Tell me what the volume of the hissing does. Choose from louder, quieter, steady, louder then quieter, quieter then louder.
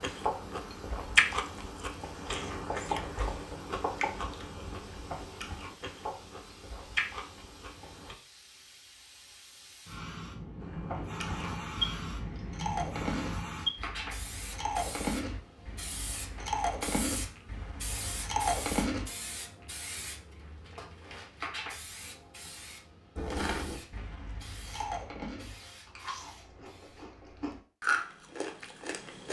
louder then quieter.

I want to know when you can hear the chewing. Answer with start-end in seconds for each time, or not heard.
0.0-8.2, 10.6-19.1, 23.1-29.2.